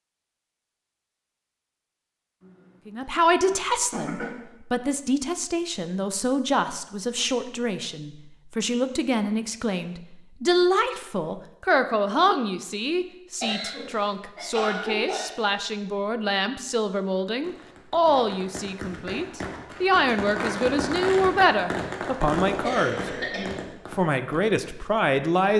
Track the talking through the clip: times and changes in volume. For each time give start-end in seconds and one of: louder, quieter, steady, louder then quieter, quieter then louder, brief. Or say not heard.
2.9-23.1 steady
23.9-25.5 brief.